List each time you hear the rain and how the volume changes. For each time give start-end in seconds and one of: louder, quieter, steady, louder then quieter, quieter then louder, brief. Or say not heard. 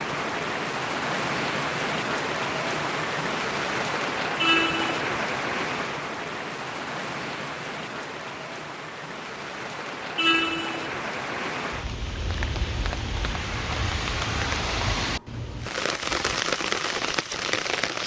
0.0-18.0 quieter then louder.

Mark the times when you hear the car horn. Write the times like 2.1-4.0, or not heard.
4.3-5.0, 10.2-10.9.